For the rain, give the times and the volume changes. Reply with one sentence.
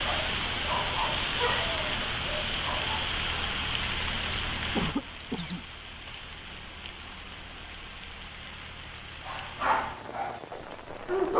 You can hear the rain from 0.0 to 11.3 s, getting quieter.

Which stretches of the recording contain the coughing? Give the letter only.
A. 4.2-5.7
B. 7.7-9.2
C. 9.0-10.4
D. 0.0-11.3
A.